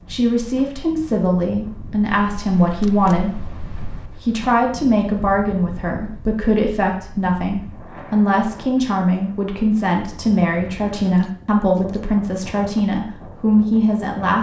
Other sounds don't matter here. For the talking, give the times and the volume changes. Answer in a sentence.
The talking can be heard from 0.1 to 14.3 s, at a steady volume.